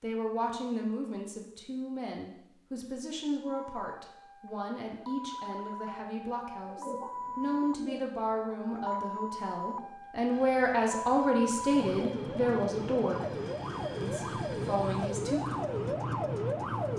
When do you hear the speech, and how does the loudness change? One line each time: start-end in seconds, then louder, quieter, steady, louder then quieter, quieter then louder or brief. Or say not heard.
0.0-13.3 louder
14.0-15.6 brief.